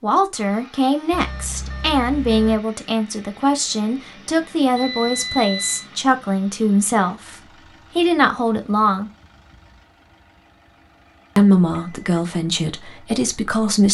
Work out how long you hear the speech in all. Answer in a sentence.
The speech can be heard for 11 seconds in total.